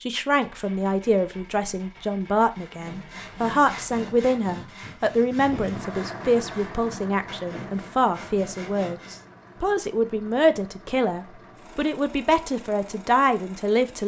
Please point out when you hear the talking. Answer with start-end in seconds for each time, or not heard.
0.0-14.0.